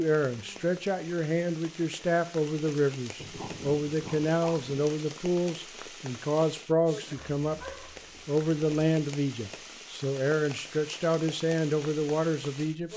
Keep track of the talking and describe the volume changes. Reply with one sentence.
The volume of the talking stays about the same.